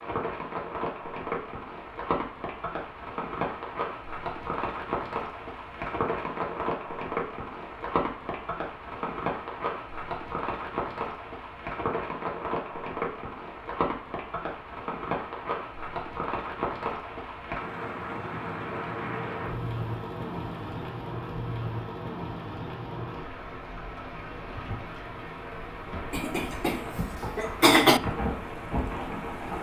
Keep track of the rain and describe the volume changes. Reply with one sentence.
The volume of the rain stays about the same.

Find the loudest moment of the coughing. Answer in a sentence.
The volume of the coughing peaks at 28 seconds.